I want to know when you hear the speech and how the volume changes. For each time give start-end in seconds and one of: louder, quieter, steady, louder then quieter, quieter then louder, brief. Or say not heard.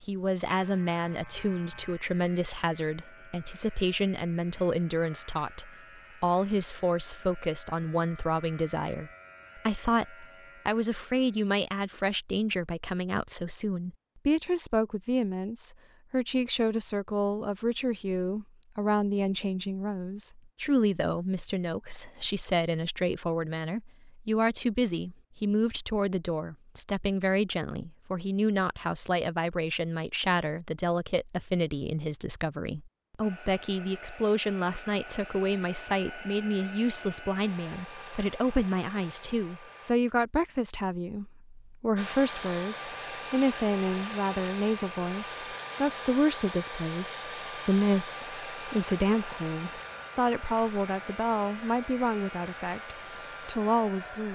0.0-54.3 steady.